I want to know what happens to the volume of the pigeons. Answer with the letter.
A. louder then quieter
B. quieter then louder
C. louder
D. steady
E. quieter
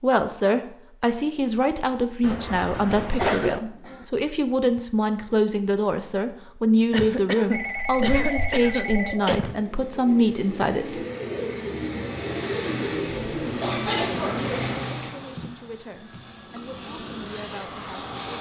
C.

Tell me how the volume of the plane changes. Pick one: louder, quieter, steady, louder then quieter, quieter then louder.
quieter then louder.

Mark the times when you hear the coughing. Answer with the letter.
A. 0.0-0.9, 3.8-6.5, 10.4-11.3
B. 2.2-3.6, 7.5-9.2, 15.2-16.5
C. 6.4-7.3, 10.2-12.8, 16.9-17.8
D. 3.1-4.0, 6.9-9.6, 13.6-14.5
D.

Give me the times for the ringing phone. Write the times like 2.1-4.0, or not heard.
2.2-3.6, 7.5-9.2, 15.2-16.5.